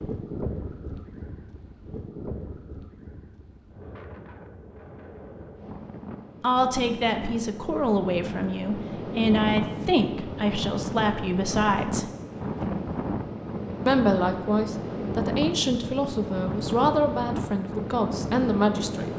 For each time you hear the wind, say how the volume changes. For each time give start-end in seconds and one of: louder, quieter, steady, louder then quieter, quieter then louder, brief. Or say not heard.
0.0-19.1 louder.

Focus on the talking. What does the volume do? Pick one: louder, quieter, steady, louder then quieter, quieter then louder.
steady.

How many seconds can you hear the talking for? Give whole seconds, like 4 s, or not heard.
11 s.